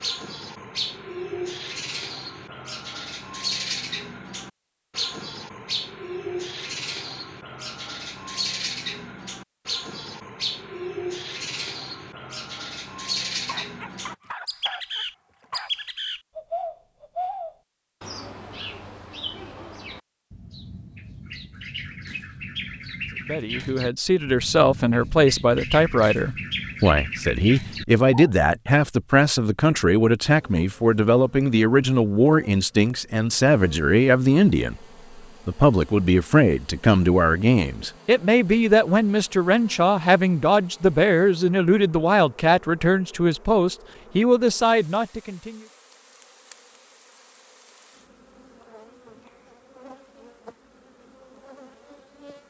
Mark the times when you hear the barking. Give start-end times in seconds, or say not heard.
13.3-15.9.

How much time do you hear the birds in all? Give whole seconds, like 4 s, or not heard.
28 s.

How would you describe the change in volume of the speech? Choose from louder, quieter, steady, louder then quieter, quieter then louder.
steady.